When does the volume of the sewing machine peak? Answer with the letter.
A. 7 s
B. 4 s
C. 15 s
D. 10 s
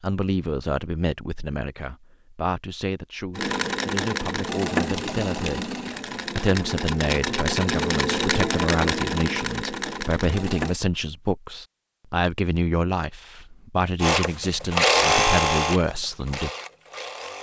C.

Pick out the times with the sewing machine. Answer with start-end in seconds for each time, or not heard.
3.4-10.8, 14.0-17.3.